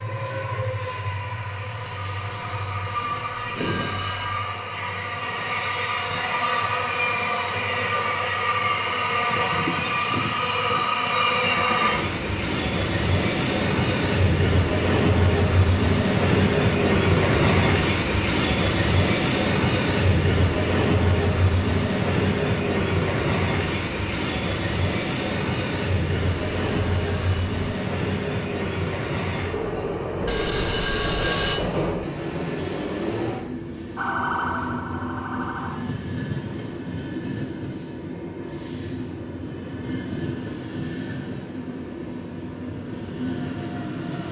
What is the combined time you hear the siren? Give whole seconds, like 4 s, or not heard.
2 s.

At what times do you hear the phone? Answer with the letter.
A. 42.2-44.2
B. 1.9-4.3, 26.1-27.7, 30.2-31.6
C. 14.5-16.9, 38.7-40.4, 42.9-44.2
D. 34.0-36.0
B.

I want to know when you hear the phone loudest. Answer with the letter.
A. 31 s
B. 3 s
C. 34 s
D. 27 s
A.